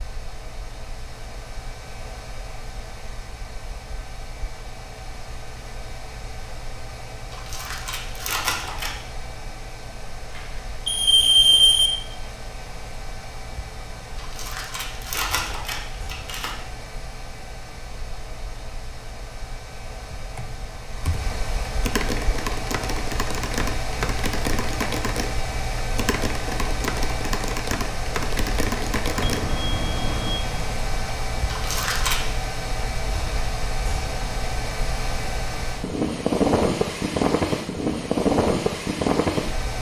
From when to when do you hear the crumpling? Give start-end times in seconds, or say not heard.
7.3-8.9, 14.2-16.6, 31.4-32.2.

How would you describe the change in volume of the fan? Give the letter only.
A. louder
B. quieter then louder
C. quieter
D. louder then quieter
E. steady
A.